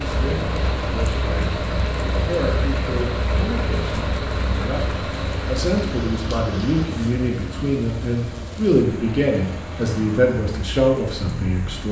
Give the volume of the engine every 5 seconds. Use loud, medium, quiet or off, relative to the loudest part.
loud, medium, medium.